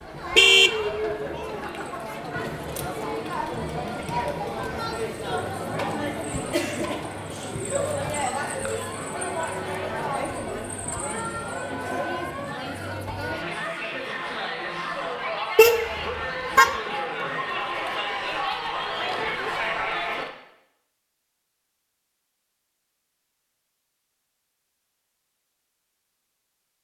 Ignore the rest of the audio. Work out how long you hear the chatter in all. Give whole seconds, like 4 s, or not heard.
20 s.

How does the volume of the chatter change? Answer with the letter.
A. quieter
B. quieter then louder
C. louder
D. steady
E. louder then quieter
D.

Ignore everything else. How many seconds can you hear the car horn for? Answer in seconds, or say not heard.
2 s.